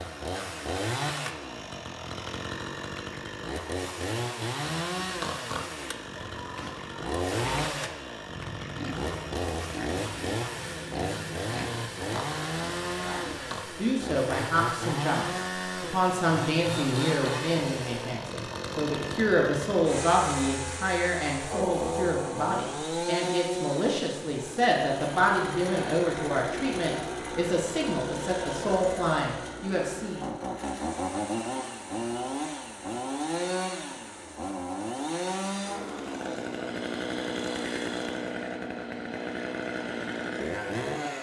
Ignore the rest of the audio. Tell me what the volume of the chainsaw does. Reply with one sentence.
The loudness of the chainsaw stays about the same.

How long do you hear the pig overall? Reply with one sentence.
You can hear the pig for 9 seconds altogether.